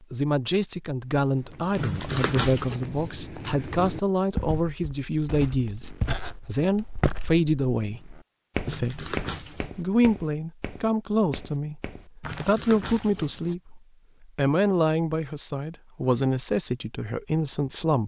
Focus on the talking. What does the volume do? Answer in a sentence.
The loudness of the talking stays about the same.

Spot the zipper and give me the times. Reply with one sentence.
The zipper can be heard from 1.8 to 2.8 s, from 8.7 to 9.7 s and from 12.2 to 13.6 s.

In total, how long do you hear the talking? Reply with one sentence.
The talking can be heard for 17 seconds in total.